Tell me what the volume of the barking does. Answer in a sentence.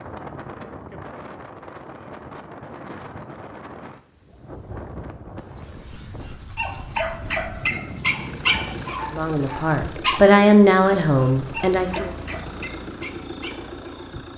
The loudness of the barking goes up, then down.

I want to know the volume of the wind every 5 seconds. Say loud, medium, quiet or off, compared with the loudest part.
loud, loud, off.